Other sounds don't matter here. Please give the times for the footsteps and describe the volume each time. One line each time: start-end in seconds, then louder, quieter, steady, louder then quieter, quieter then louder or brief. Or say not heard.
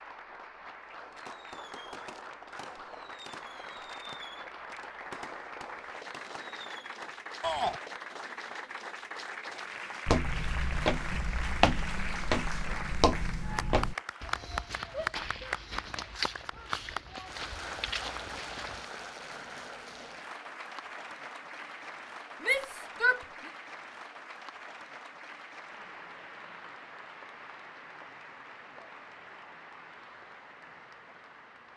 10.1-18.9 quieter.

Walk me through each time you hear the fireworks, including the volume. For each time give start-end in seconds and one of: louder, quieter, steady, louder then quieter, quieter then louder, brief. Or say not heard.
0.8-7.2 steady.